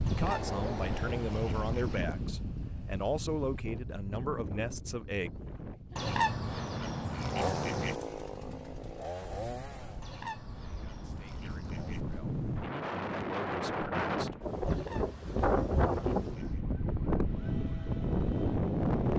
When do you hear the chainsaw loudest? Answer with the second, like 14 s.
8 s.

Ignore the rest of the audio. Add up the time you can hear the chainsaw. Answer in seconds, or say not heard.
5 s.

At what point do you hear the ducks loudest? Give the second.
6 s.